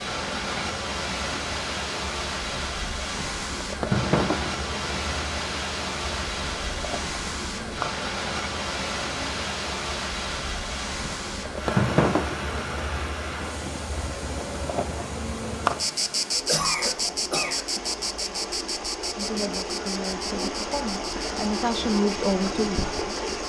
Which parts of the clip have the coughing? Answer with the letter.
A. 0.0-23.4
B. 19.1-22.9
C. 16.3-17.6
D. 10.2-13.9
C.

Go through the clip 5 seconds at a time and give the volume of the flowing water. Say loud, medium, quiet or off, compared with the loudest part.
loud, loud, loud, medium, loud.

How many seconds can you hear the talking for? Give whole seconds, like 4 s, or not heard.
4 s.